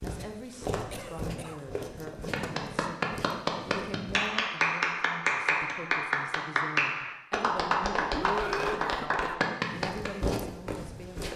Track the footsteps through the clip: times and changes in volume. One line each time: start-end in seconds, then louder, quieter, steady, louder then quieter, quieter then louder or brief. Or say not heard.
0.0-4.3 quieter
9.7-11.3 brief.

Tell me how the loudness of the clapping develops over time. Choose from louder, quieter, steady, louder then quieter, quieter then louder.
steady.